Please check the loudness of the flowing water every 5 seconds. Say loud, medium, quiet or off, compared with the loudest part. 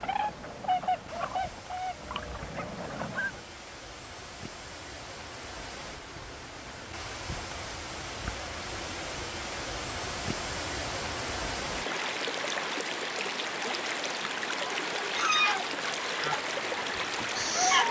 quiet, medium, loud, loud.